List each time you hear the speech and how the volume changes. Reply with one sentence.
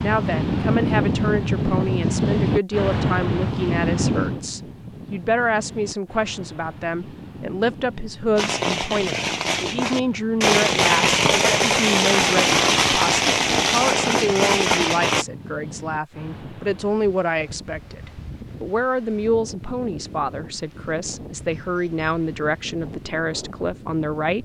You can hear the speech from 0.0 to 24.4 s, at a steady volume.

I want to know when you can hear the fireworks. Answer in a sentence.
The fireworks can be heard from 8.3 to 15.2 s.